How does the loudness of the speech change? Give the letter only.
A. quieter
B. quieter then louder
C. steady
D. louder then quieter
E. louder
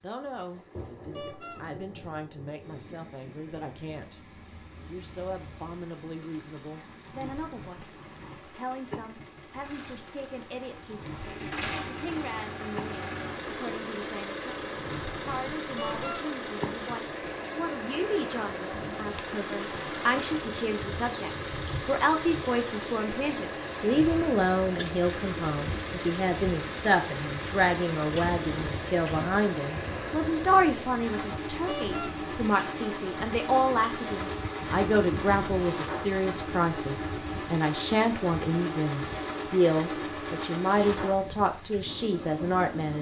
E.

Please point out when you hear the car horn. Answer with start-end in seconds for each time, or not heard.
1.1-1.6, 15.8-16.2, 31.6-32.1.